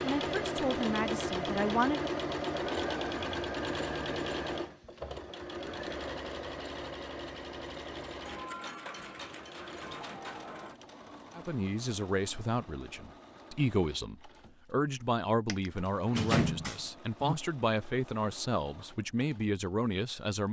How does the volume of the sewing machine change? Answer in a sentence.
The volume of the sewing machine goes down.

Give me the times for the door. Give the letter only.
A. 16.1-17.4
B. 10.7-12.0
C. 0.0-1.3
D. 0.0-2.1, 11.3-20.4
A.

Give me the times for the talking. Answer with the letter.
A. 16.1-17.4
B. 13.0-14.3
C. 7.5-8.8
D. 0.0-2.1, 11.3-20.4
D.